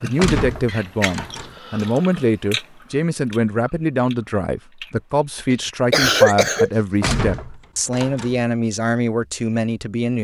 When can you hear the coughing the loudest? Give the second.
6 s.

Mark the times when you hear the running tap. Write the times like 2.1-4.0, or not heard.
not heard.